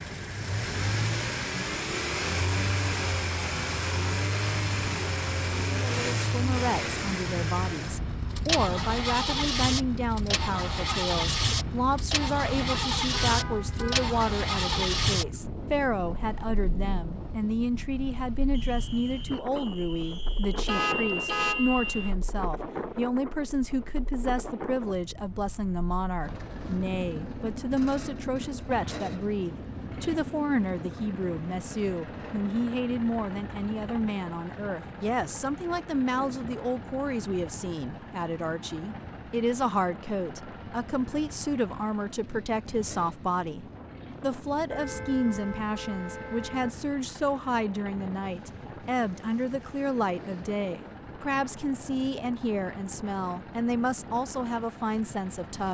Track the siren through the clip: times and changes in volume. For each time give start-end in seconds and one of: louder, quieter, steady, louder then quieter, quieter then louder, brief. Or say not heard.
not heard.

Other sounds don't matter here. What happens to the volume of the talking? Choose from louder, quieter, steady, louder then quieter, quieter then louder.
steady.